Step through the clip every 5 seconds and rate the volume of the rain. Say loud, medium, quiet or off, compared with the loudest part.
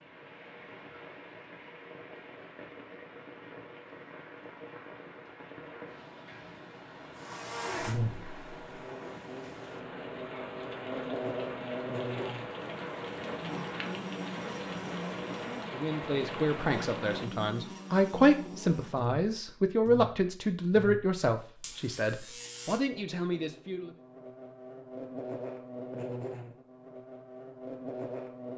medium, medium, loud, loud, off, off.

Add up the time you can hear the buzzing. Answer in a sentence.
You can hear the buzzing for 21 seconds altogether.